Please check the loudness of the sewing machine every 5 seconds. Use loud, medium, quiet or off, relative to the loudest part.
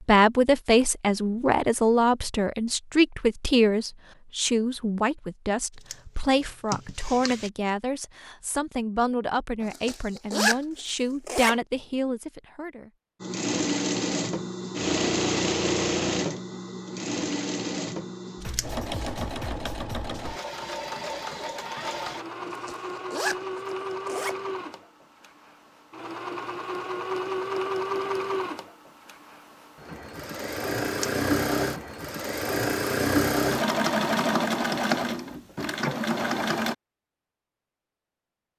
off, off, loud, loud, medium, medium, loud, loud.